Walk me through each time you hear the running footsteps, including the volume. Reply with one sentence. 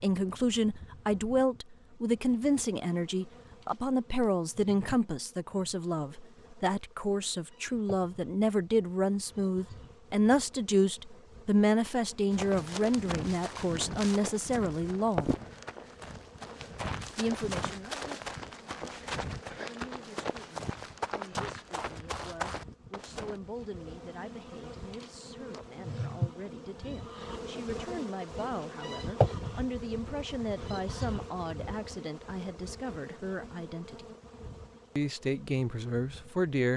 You can hear the running footsteps from 12.3 to 23.4 s, at a steady volume.